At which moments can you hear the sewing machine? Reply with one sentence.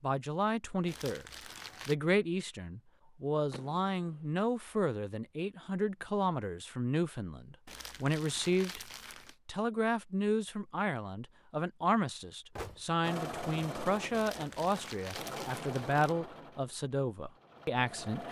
The sewing machine can be heard from 13.0 to 18.2 s.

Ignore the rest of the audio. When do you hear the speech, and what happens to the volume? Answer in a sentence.
The speech can be heard briefly from 0.0 to 1.2 s; and from 1.9 to 18.2 s, at a steady volume.